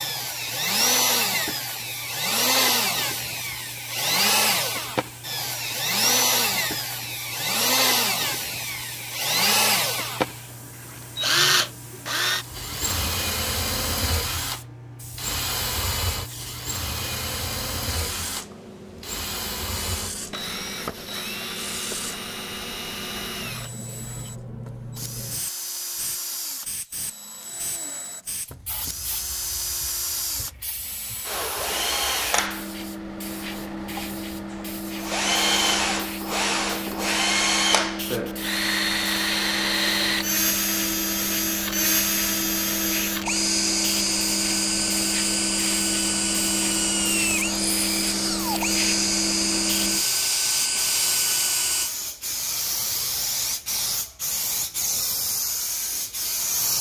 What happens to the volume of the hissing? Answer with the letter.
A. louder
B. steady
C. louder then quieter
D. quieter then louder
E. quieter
A.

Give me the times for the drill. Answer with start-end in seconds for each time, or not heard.
0.0-51.9.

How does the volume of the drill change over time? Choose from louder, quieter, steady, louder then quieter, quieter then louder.
quieter then louder.